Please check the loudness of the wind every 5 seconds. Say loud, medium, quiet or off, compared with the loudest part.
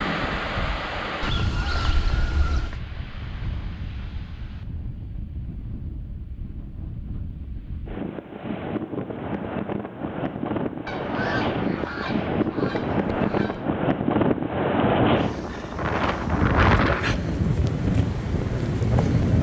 medium, medium, loud, loud.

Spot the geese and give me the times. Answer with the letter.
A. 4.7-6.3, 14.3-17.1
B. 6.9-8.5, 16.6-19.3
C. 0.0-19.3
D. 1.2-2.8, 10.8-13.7
D.